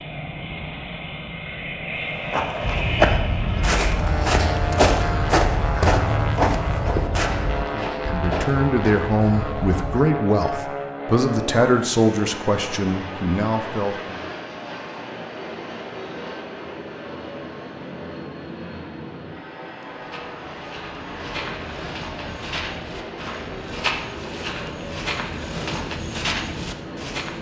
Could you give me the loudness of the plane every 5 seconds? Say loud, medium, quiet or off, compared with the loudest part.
loud, loud, loud, medium, medium, medium.